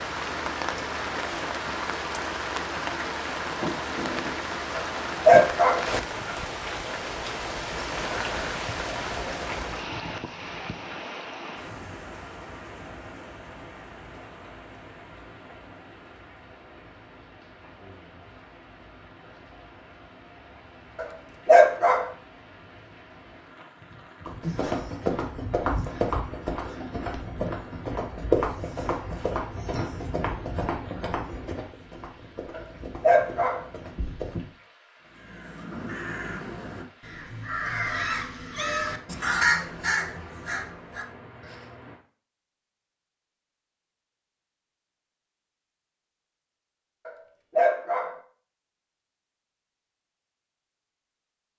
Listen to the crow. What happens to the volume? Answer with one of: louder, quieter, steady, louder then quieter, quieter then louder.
louder then quieter.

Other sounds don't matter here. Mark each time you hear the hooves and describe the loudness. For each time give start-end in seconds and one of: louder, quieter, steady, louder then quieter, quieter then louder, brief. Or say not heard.
24.2-34.5 quieter.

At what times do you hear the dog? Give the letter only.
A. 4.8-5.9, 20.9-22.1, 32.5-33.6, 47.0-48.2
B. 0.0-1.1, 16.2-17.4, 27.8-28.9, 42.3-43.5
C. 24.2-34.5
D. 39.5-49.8
A.